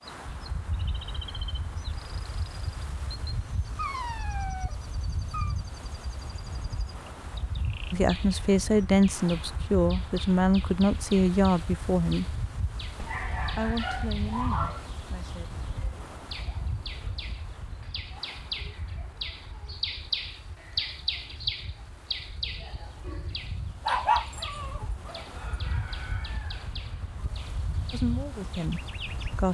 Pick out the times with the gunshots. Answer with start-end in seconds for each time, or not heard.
not heard.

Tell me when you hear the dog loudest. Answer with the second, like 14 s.
24 s.